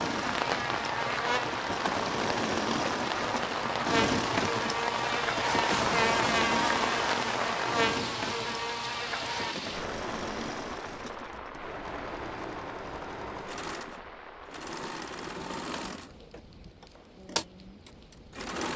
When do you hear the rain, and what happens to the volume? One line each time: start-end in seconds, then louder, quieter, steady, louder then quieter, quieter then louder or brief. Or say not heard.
0.0-18.6 quieter.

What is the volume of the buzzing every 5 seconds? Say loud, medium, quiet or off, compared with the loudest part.
loud, loud, off, off.